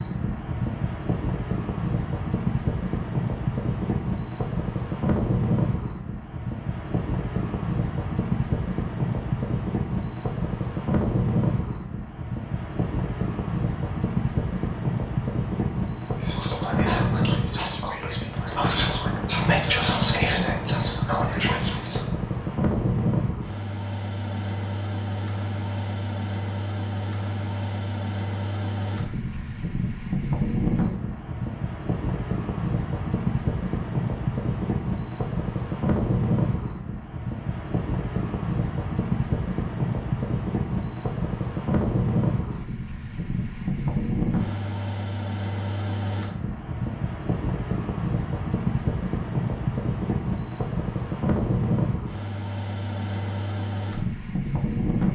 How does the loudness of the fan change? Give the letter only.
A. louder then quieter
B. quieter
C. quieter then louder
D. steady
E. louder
D.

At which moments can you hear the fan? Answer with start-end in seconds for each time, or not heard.
0.0-55.0.